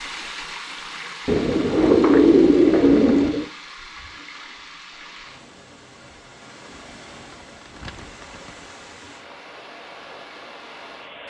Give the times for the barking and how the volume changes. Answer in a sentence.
You can't hear the barking here.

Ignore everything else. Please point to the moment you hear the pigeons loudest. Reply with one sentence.
The loudest moment of the pigeons is at 2 seconds.